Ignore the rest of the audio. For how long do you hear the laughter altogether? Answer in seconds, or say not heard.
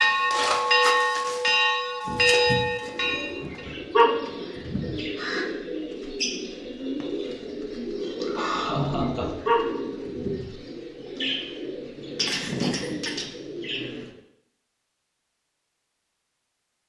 3 s.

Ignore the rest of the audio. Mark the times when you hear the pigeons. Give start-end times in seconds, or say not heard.
2.8-14.2.